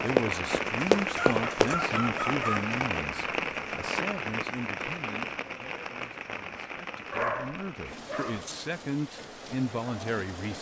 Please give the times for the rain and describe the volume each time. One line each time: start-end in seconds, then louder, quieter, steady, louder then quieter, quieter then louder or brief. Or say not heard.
0.0-10.5 quieter.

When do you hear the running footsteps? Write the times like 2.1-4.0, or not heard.
0.1-1.8.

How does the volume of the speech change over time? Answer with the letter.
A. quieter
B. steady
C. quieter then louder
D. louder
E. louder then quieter
C.